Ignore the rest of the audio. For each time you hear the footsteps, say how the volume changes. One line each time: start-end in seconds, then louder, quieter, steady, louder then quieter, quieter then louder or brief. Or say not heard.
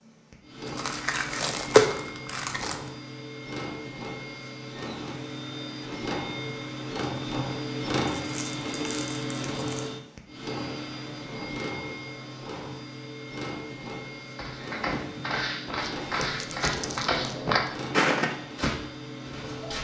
14.3-19.7 louder then quieter.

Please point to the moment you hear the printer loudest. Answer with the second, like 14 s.
8 s.